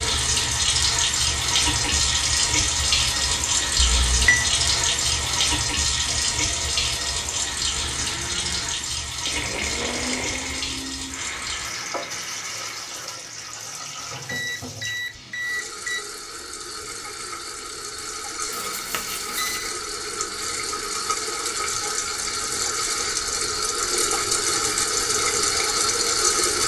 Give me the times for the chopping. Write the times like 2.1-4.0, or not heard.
not heard.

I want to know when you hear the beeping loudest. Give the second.
4 s.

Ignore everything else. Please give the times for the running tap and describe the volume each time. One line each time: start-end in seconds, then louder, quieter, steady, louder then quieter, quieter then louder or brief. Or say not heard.
0.0-26.6 quieter then louder.